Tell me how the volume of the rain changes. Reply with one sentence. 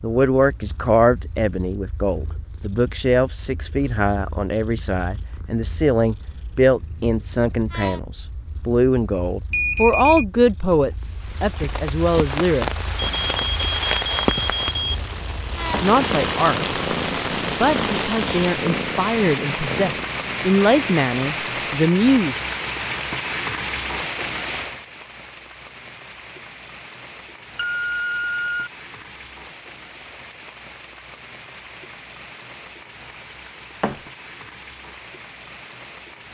The volume of the rain goes down.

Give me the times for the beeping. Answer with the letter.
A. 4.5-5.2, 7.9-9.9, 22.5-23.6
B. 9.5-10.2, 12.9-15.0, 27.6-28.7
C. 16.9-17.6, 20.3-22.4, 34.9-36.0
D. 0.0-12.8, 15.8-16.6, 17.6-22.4
B.